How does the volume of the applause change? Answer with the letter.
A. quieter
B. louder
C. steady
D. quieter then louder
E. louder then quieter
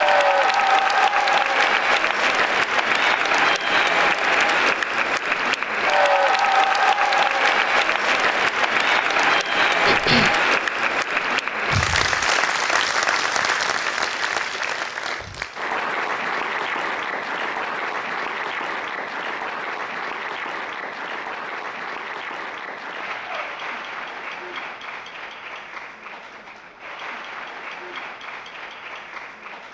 A.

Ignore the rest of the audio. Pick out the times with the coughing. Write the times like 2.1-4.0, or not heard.
9.8-10.4.